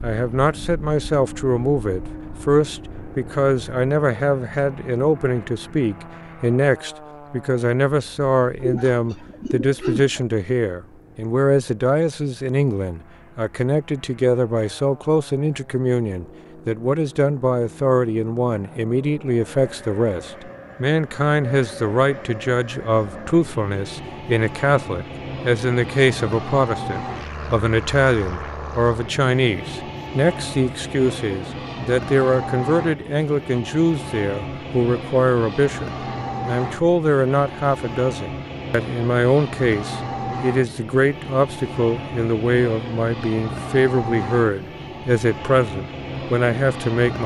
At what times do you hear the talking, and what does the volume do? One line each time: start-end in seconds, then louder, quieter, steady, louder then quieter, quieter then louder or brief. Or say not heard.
0.0-47.2 steady.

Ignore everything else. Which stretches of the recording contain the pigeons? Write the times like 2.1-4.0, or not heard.
8.6-10.2.